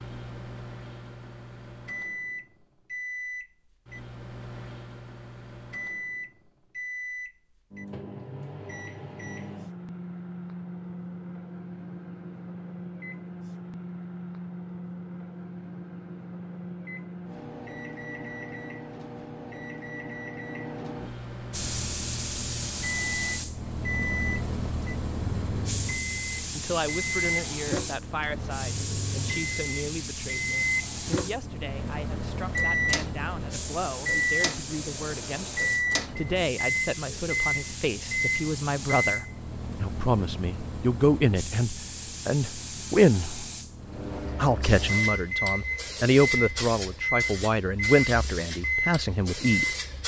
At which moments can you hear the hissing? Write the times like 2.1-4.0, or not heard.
21.5-50.0.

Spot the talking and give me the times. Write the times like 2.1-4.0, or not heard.
26.6-43.5, 44.4-49.8.